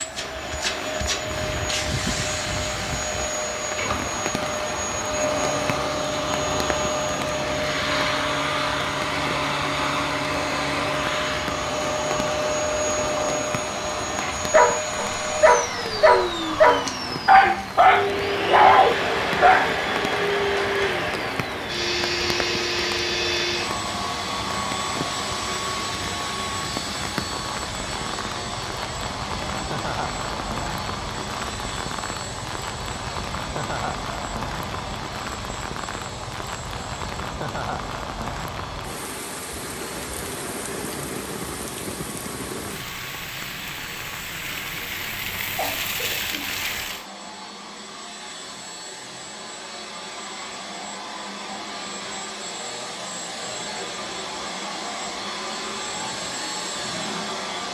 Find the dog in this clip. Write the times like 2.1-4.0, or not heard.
14.5-19.7.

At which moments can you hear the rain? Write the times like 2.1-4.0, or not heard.
0.0-47.0.